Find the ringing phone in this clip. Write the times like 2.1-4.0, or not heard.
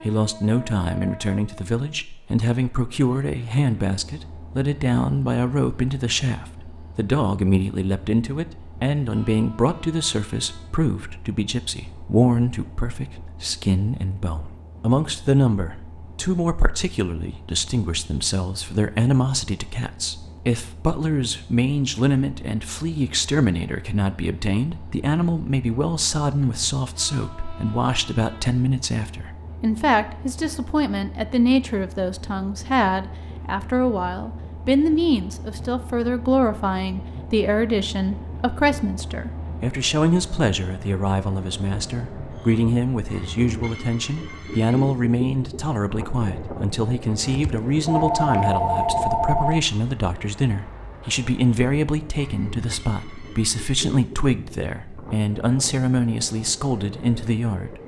47.2-49.6.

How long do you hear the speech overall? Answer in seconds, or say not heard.
58 s.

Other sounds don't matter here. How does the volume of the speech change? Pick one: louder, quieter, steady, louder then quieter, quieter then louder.
steady.